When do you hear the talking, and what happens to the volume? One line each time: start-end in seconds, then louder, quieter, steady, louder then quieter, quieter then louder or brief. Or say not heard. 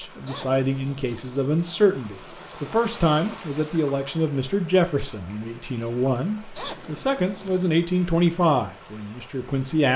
0.0-9.9 steady.